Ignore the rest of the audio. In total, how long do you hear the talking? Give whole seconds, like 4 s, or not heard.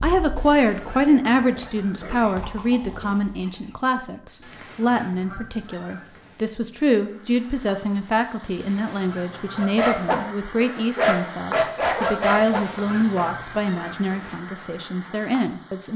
16 s.